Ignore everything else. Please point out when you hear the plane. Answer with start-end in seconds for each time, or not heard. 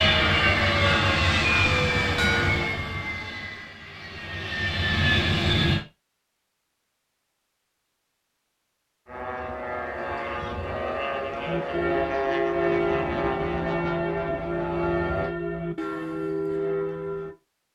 0.0-5.8, 9.1-15.3.